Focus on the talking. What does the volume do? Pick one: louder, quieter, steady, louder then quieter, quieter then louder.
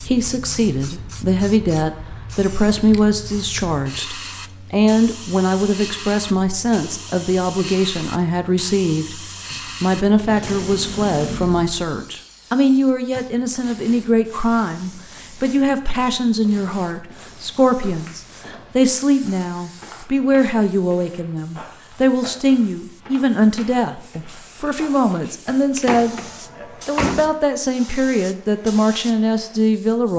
steady.